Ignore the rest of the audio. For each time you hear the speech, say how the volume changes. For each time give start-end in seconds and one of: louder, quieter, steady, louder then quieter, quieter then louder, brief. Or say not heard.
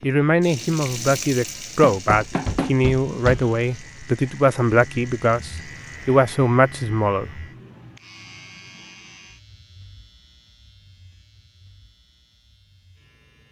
0.0-7.3 steady.